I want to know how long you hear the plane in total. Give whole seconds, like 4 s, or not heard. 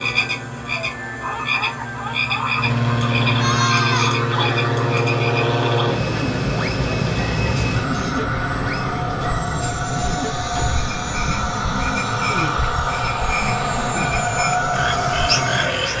16 s.